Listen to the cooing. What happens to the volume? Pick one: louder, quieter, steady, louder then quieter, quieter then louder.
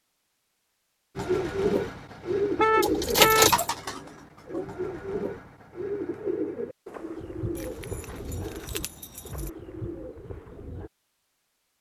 quieter.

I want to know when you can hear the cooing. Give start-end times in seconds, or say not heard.
1.1-10.9.